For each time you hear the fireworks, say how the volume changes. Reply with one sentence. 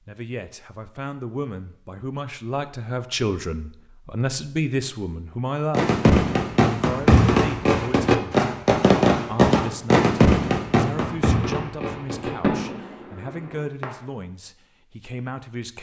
The fireworks can be heard from 5.7 to 13.8 s, getting quieter.